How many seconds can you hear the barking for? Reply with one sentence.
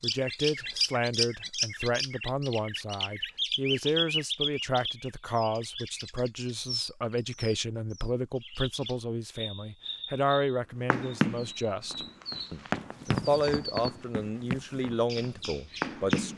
The barking can't be heard in this clip.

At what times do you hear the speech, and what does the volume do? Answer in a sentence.
The speech can be heard from 0.0 to 16.3 s, at a steady volume.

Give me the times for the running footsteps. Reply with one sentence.
The running footsteps can be heard from 10.9 to 16.3 s.